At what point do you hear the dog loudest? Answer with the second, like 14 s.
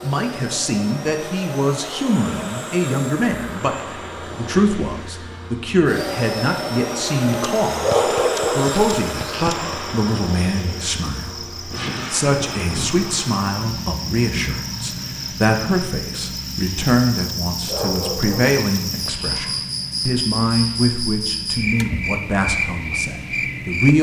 8 s.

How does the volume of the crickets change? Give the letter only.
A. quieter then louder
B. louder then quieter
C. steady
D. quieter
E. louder
E.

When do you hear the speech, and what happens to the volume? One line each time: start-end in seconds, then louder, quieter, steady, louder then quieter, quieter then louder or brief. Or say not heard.
0.0-23.9 steady.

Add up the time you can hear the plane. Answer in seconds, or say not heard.
24 s.